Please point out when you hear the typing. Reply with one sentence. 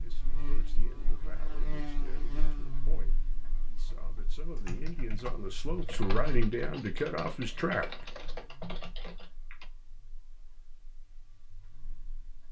The typing can be heard from 3.9 to 9.7 s.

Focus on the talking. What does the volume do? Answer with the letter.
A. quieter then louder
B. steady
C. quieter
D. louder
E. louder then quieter
D.